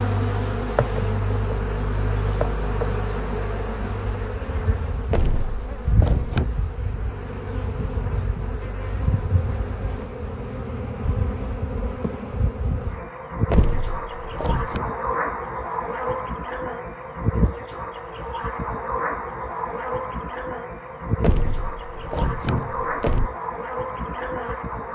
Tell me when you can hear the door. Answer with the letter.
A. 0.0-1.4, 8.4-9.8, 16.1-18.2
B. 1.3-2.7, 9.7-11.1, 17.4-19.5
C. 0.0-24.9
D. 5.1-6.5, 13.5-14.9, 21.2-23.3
D.